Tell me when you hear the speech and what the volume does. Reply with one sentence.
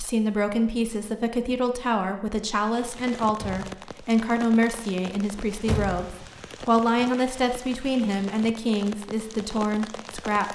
You can hear the speech from 0.0 to 10.5 s, at a steady volume.